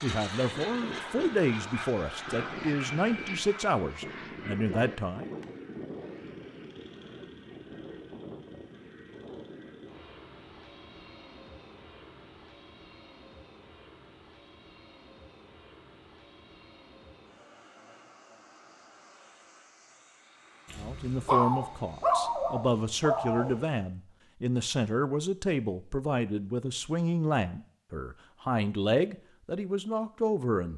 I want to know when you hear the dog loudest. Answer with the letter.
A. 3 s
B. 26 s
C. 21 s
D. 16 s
C.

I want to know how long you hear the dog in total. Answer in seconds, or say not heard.
3 s.